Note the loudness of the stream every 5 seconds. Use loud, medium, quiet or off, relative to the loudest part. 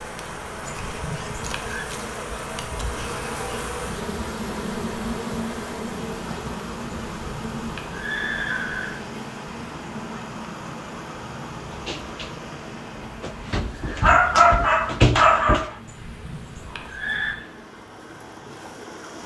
loud, loud, loud, medium.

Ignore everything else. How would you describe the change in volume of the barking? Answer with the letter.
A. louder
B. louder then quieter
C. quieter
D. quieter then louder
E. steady
A.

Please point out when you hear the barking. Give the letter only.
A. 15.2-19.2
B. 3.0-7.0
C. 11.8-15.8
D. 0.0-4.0
C.